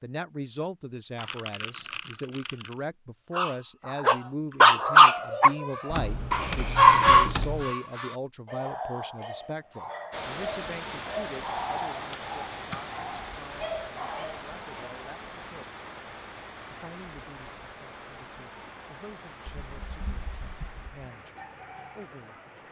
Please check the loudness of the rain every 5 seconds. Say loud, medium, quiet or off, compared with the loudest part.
off, off, loud, medium, medium.